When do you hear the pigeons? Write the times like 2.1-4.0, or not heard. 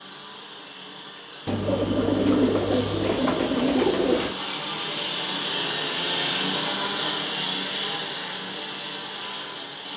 1.4-4.3.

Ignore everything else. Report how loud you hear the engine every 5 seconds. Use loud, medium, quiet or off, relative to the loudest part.
medium, loud.